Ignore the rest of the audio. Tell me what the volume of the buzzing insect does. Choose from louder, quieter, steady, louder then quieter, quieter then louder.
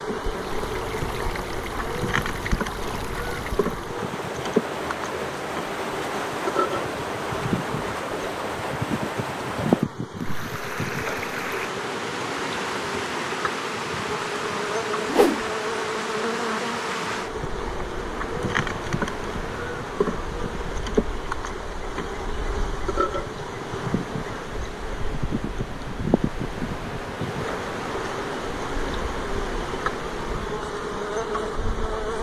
steady.